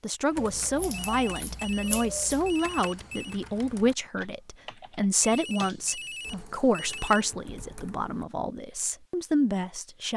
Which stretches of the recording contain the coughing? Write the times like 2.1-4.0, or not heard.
not heard.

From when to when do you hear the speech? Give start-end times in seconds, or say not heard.
0.0-10.1.